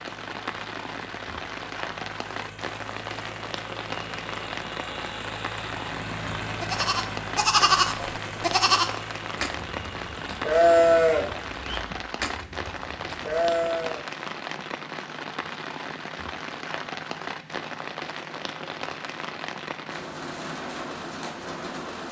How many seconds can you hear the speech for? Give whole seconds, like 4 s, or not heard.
not heard.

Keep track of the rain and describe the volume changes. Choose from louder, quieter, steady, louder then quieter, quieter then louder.
steady.